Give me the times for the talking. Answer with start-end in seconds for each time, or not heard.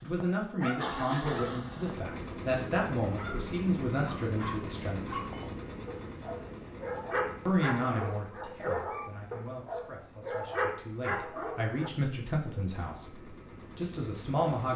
0.0-5.2, 7.5-14.7.